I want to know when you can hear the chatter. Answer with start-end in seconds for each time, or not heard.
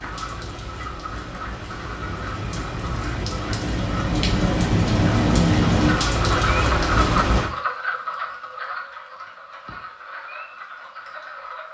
not heard.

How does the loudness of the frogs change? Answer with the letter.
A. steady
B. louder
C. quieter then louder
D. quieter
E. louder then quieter
E.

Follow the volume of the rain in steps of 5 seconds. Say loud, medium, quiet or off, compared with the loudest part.
medium, loud, off.